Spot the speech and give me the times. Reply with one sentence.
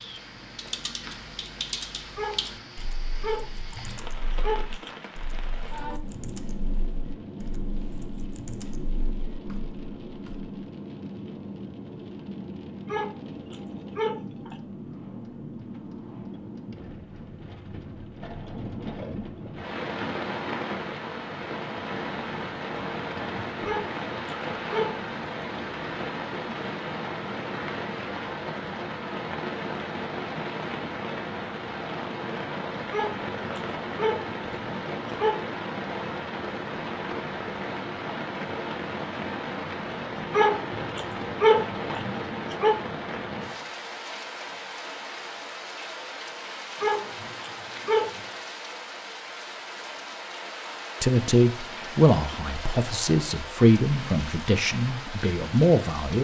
You can hear the speech from 51.0 to 56.2 s.